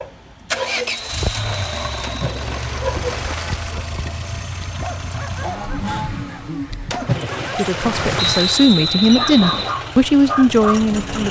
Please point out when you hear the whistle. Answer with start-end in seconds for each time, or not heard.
0.8-2.9, 8.2-9.8.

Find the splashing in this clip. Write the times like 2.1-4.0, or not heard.
2.0-3.9, 6.9-8.8.